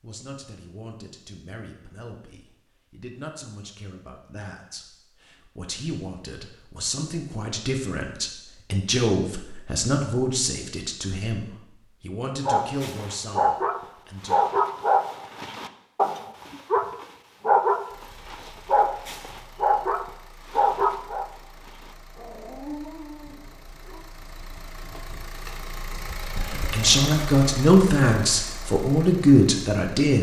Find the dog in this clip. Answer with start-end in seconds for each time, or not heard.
12.4-24.1.